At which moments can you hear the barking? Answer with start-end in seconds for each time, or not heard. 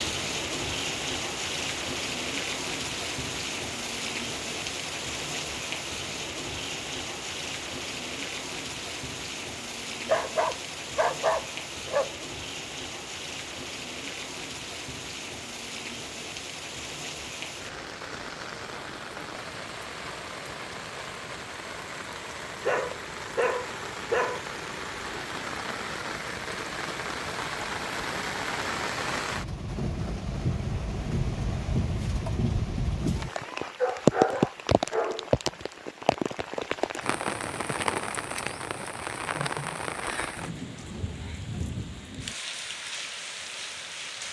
10.1-12.1, 22.6-24.4, 33.6-35.6.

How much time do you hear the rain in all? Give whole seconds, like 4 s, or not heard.
44 s.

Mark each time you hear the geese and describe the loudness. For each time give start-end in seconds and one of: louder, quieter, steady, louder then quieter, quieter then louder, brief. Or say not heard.
not heard.